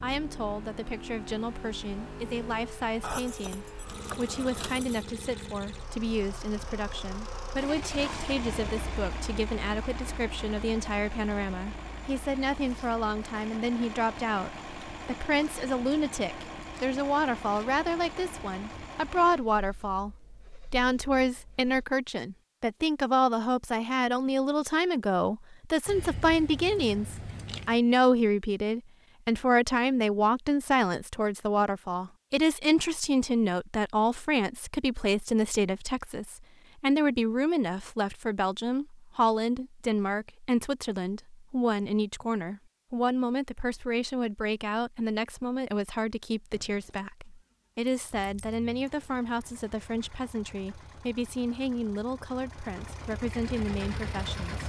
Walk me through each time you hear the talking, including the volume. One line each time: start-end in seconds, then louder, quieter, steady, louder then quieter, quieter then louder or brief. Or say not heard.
0.0-54.6 louder then quieter.